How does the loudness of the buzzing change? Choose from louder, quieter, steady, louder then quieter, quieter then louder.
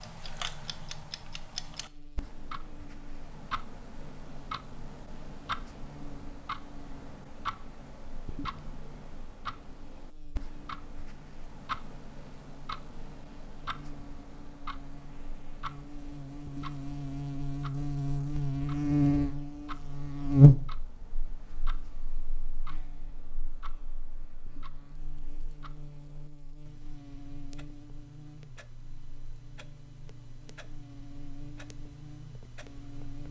louder then quieter.